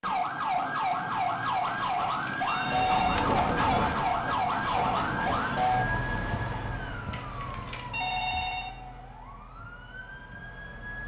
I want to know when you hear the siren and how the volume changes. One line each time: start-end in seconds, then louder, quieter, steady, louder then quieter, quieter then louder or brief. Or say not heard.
0.0-11.0 quieter.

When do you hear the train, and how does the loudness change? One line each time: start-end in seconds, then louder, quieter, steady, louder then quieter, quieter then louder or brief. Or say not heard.
2.6-6.8 quieter.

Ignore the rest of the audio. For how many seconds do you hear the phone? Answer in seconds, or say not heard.
3 s.